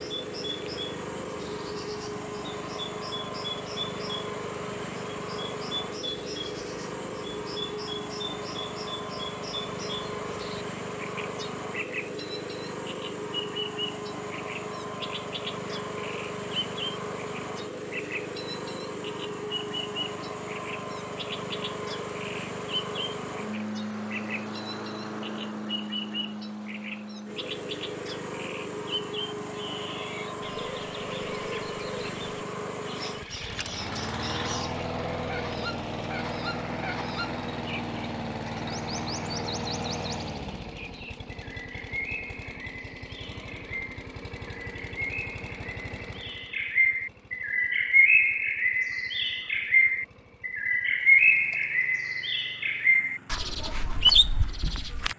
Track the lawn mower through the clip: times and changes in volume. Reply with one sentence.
You can hear the lawn mower from 0.0 to 55.1 s, getting quieter.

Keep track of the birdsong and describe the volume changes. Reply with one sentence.
The loudness of the birdsong goes up.